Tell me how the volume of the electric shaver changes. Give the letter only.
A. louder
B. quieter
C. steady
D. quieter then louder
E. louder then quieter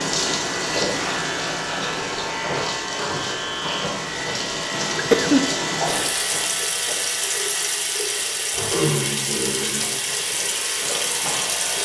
B.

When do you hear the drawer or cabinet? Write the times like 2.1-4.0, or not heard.
not heard.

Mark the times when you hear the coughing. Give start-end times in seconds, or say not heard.
5.0-6.1.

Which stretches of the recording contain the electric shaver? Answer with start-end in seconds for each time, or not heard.
0.0-11.8.